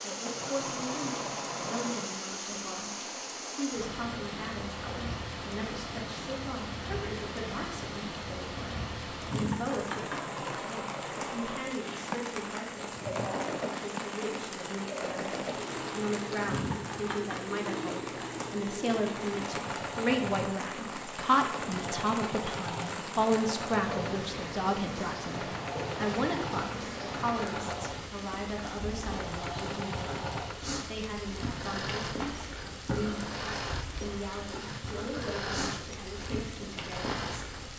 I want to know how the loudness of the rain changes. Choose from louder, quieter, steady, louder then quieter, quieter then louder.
steady.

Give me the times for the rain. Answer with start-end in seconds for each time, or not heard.
0.0-37.7.